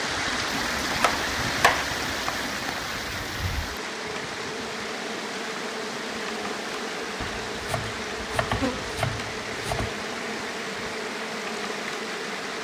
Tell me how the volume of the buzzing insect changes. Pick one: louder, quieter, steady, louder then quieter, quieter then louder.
louder.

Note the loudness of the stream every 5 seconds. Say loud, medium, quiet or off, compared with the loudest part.
loud, medium, medium.